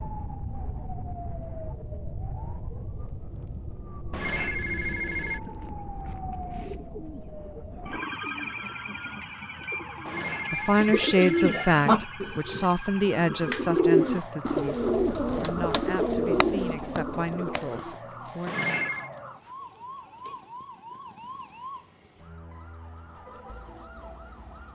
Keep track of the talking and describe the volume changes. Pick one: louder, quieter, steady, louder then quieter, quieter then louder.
quieter.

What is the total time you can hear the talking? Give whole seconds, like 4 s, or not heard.
8 s.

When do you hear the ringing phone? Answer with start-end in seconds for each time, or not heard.
4.1-5.4, 10.1-12.2, 18.4-19.1.